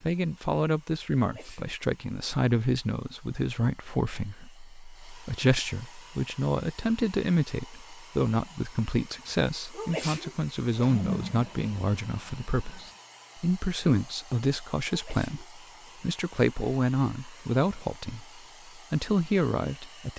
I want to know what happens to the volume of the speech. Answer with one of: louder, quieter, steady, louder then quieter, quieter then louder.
steady.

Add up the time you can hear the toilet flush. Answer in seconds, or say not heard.
2 s.